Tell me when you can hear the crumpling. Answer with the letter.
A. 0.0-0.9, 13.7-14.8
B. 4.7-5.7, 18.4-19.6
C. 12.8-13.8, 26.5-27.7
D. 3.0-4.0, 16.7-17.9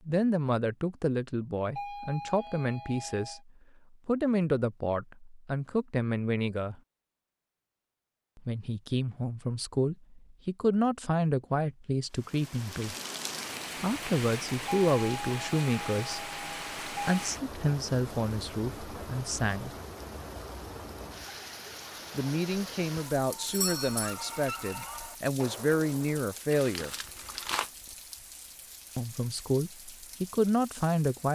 C.